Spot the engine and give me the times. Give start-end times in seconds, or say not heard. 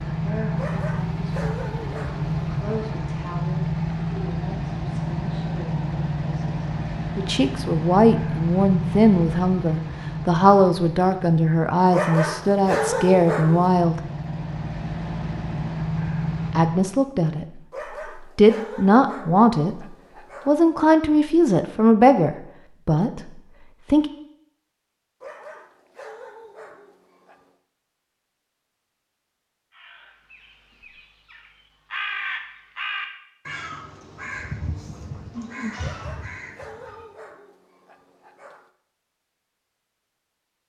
0.0-16.9.